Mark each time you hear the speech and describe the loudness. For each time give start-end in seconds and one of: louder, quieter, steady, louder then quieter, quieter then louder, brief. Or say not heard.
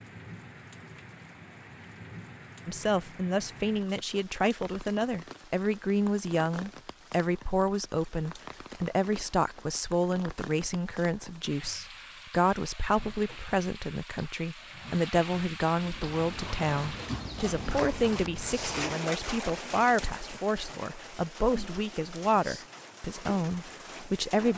2.6-24.5 steady.